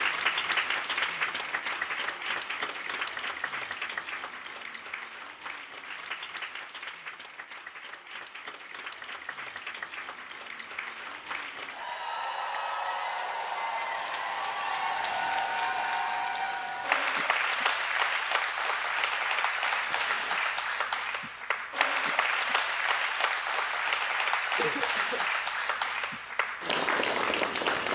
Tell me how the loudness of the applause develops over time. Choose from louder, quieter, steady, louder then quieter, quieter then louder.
quieter then louder.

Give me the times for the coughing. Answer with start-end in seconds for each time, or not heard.
24.6-25.2.